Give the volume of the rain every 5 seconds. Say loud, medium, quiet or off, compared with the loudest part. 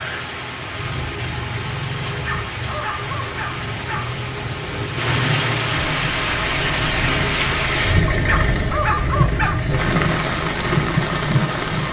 medium, loud, loud.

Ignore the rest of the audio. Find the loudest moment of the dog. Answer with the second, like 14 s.
9 s.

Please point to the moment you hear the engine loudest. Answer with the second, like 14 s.
8 s.